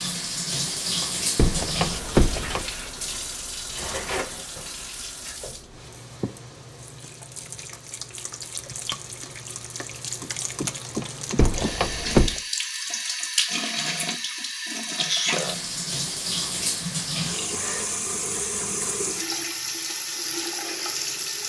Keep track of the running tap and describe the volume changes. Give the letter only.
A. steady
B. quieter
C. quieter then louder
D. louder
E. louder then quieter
C.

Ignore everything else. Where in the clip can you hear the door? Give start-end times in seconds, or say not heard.
1.0-2.6, 11.0-12.4.